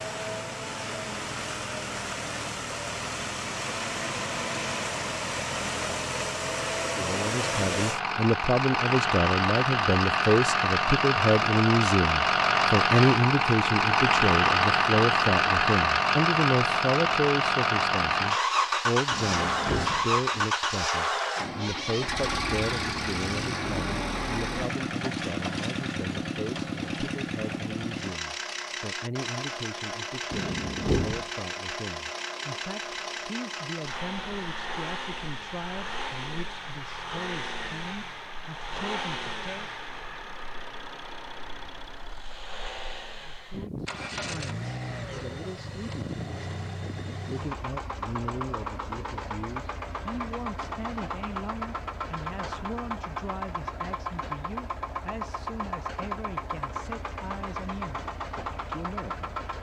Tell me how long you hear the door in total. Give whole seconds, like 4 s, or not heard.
2 s.